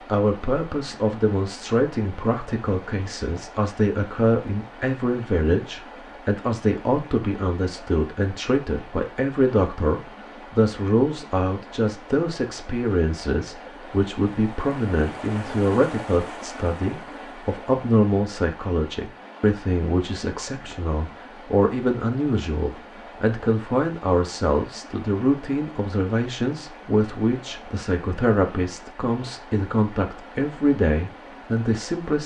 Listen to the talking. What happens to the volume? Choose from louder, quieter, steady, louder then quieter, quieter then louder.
steady.